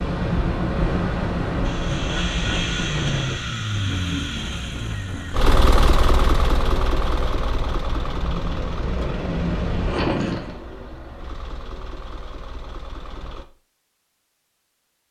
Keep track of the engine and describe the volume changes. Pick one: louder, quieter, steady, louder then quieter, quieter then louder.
quieter.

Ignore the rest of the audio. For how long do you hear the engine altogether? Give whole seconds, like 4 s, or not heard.
12 s.